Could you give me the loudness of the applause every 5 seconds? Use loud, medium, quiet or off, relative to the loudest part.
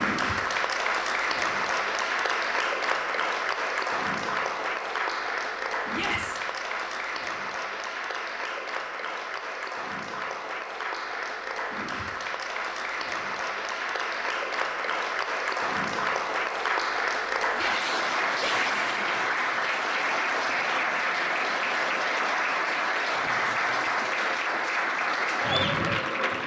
loud, medium, medium, loud, loud, loud.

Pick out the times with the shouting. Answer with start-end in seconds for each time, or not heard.
5.9-6.4, 17.5-18.8.